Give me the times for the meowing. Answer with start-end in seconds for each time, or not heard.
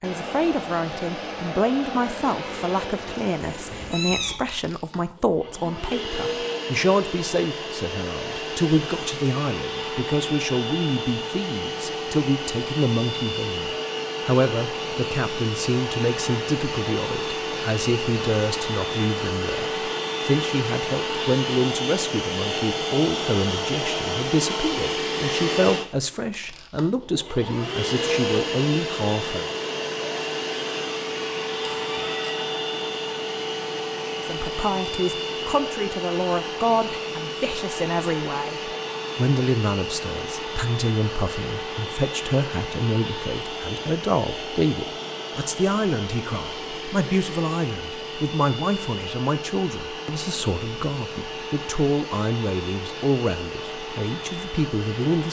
3.4-4.3, 31.9-32.4.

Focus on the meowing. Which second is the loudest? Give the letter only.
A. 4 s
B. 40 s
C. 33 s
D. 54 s
A.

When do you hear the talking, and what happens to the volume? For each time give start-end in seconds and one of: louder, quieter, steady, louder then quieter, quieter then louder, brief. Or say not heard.
0.0-29.5 steady
34.1-55.2 steady.